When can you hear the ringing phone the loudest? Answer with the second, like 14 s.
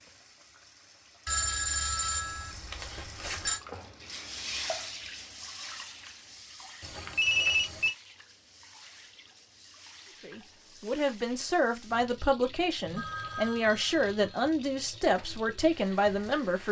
7 s.